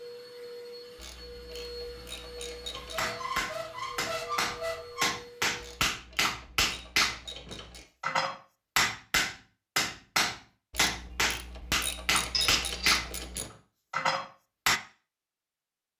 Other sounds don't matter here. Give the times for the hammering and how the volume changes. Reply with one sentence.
You can hear the hammering from 3.0 to 14.8 s, at a steady volume.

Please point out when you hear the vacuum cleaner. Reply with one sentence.
You can hear the vacuum cleaner from 0.0 to 5.8 s.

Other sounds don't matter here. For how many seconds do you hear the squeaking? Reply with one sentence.
The squeaking can be heard for 3 seconds in total.